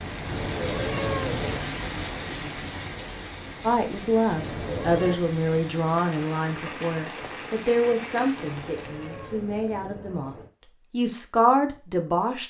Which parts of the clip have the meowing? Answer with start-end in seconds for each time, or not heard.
0.2-1.8, 4.3-5.2, 8.6-10.5.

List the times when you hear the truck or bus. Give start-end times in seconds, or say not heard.
not heard.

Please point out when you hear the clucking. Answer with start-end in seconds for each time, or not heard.
not heard.